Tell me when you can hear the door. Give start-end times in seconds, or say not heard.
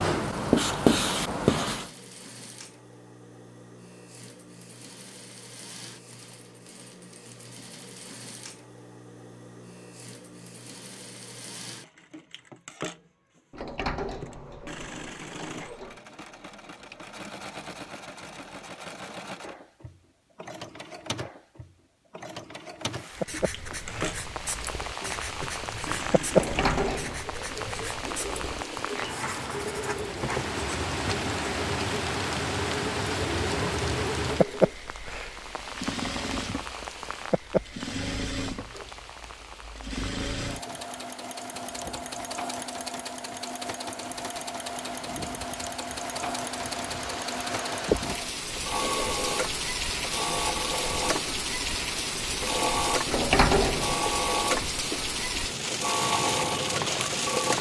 13.5-16.0, 26.3-27.2, 53.0-54.0.